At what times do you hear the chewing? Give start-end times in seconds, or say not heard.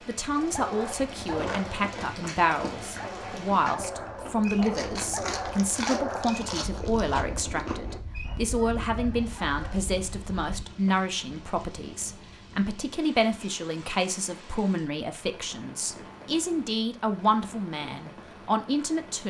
1.1-8.0.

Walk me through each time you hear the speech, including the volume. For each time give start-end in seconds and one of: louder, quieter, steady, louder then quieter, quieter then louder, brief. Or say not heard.
0.1-19.2 steady.